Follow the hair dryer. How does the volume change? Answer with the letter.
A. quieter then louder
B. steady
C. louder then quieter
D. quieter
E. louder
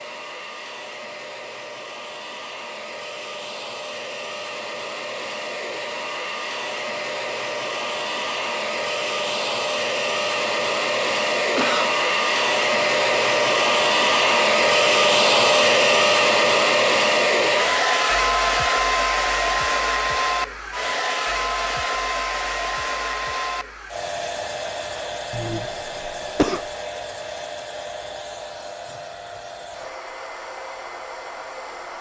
C.